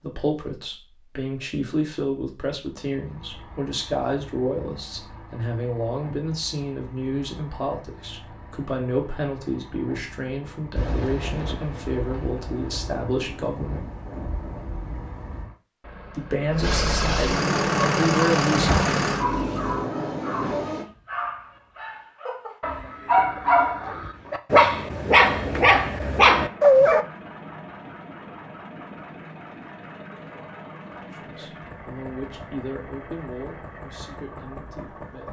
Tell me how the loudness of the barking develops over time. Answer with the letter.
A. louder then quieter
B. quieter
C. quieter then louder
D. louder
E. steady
D.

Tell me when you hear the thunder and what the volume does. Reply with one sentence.
You can hear the thunder from 10.8 to 15.5 s, at a steady volume; and briefly from 18.8 to 20.9 s.